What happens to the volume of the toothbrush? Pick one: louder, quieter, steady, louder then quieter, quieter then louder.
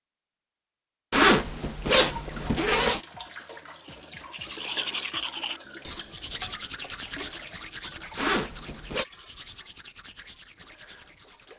quieter.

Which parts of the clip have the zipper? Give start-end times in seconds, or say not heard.
1.1-3.0, 8.2-9.1.